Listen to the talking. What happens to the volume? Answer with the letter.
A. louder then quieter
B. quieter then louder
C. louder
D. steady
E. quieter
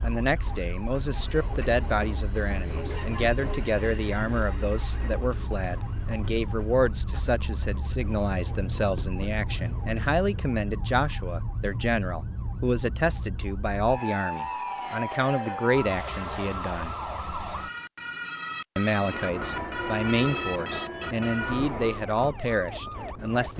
D.